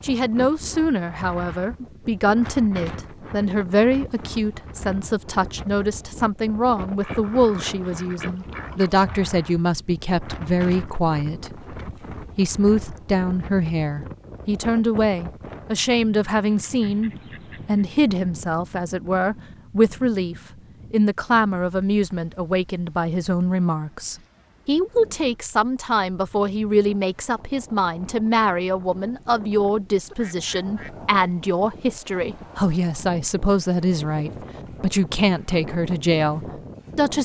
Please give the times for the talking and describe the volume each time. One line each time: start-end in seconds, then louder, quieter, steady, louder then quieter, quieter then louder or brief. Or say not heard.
0.0-37.2 steady.